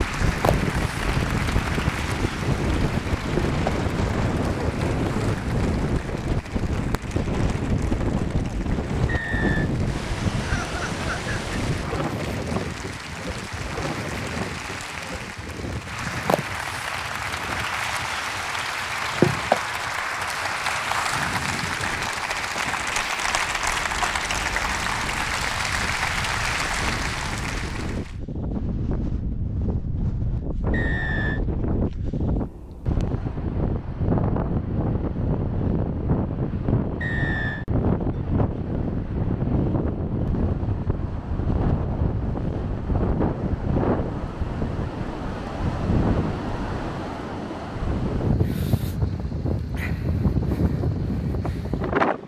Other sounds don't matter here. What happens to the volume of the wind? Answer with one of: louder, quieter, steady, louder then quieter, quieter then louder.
quieter then louder.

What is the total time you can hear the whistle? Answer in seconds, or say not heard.
2 s.